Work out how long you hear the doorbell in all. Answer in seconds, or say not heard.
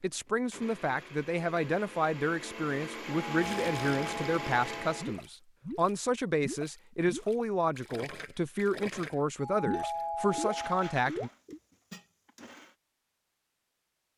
3 s.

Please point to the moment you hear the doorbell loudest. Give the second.
10 s.